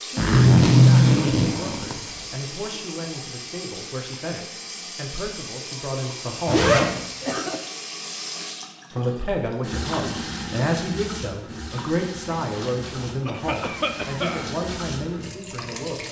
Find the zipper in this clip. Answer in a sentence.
You can hear the zipper from 0.1 to 2.4 s, from 6.5 to 7.0 s and from 12.4 to 13.2 s.